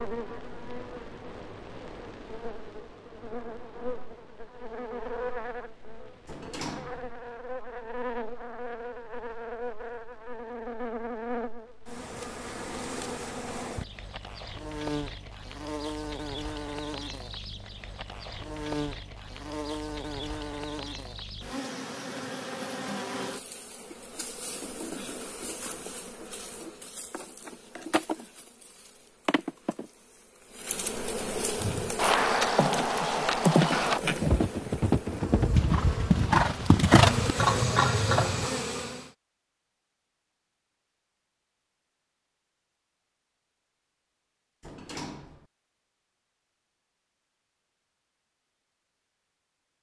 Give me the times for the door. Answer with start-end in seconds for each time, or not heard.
6.2-7.1, 44.6-45.5.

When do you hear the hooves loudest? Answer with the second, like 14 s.
37 s.